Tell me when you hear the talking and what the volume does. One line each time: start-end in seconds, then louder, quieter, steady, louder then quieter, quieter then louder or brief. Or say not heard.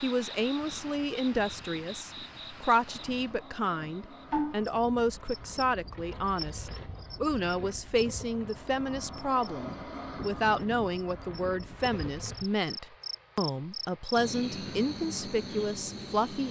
0.0-16.4 steady.